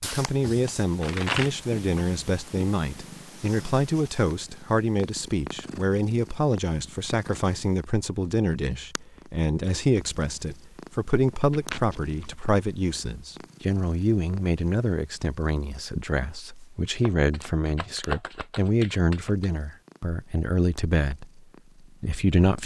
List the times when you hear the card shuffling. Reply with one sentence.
The card shuffling can be heard from 0.4 to 2.1 s, from 11.5 to 12.3 s and from 17.0 to 19.5 s.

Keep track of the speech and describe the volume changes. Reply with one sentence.
The volume of the speech stays about the same.